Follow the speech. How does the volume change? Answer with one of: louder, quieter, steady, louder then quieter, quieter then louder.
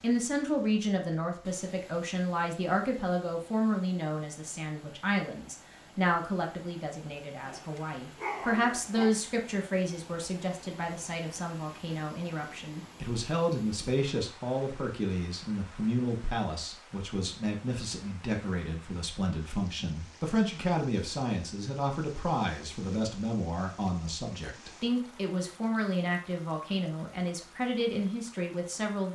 steady.